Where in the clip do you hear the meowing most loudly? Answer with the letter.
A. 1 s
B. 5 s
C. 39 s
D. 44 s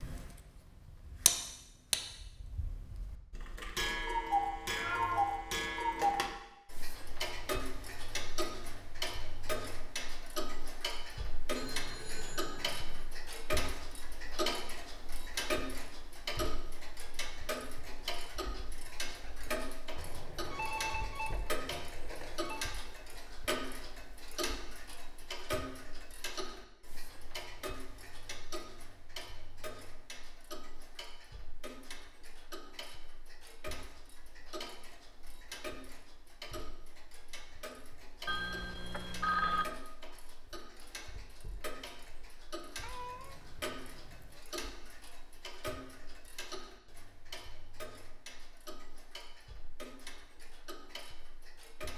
B.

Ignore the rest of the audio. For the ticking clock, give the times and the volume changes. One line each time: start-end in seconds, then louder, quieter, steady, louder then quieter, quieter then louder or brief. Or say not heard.
0.0-51.9 quieter.